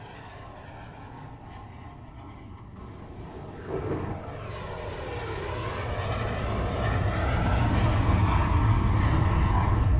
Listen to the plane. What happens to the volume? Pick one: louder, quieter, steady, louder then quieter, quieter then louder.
louder.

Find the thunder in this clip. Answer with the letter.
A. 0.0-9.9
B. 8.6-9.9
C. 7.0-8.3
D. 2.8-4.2
D.